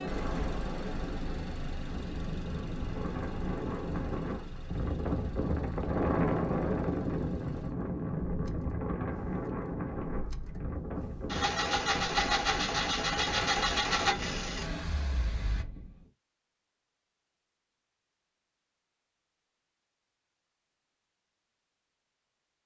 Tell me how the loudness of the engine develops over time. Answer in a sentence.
The loudness of the engine goes down, then up.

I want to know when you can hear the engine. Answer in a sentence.
You can hear the engine from 0.0 to 15.7 s.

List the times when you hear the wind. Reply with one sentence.
The wind can be heard from 0.0 to 16.1 s.